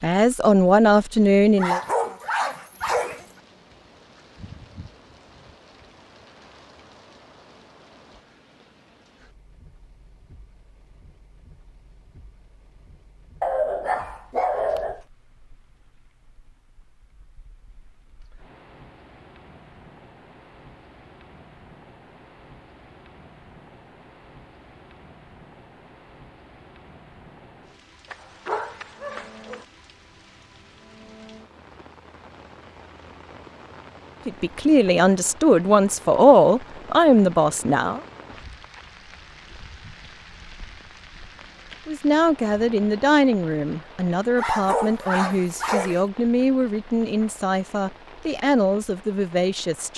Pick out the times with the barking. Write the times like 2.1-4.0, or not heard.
1.6-3.2, 13.4-15.0, 28.1-29.6, 44.4-46.0.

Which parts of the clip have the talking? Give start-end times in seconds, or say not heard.
0.0-1.8, 34.2-38.0, 41.9-49.9.